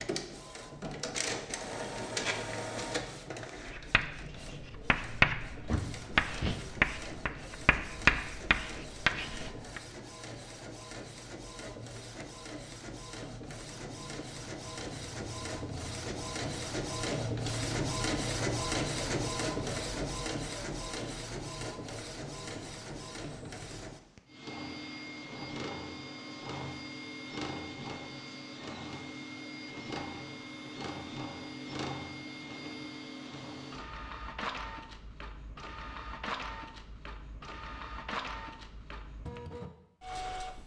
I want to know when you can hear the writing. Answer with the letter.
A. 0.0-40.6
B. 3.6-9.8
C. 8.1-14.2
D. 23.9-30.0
B.